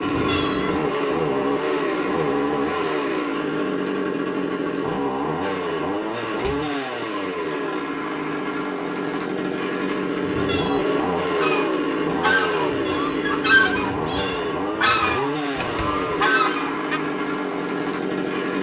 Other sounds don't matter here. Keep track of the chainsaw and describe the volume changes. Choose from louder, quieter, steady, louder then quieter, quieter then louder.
steady.